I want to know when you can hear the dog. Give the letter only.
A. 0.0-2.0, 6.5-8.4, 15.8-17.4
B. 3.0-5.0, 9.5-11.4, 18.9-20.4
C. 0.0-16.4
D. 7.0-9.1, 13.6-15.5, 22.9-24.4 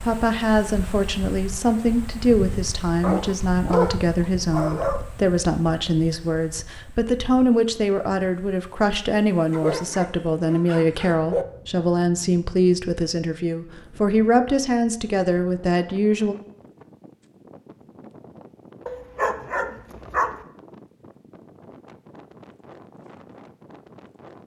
B.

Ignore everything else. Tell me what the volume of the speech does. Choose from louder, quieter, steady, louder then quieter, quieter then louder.
steady.